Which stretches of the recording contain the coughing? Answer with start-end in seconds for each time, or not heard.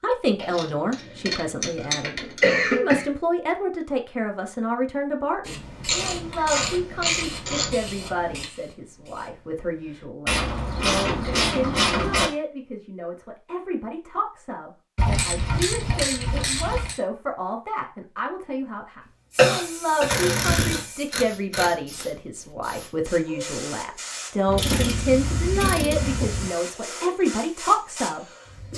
2.2-3.0, 19.4-20.1.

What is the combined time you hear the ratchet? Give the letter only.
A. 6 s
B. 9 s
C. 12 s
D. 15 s
C.